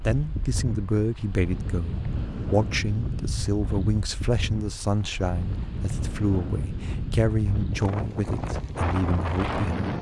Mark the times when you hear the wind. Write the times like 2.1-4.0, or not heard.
0.0-9.9.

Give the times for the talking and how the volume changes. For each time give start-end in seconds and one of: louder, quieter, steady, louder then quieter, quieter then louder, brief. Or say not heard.
0.0-9.9 steady.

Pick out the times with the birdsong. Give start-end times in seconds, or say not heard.
not heard.